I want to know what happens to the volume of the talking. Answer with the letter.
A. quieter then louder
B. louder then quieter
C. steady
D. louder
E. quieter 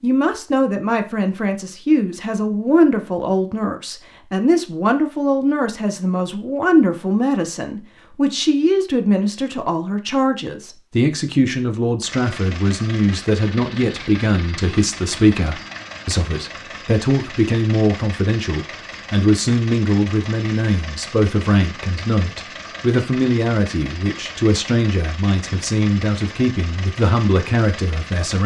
C.